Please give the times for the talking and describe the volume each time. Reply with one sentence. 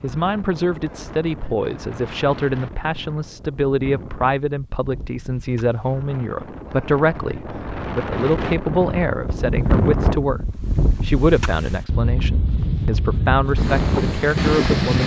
The talking can be heard from 0.0 to 15.0 s, at a steady volume.